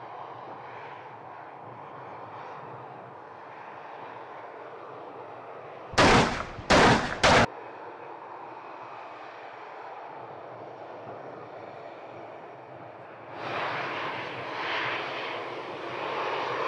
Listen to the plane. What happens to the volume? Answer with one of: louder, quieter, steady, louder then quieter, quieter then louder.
louder.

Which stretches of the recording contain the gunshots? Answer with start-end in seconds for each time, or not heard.
5.9-7.5.